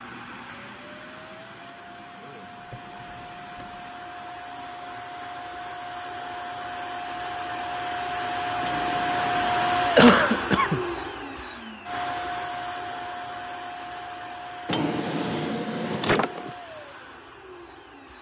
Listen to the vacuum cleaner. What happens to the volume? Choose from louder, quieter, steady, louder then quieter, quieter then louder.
louder then quieter.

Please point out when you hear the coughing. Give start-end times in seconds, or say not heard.
9.9-10.8.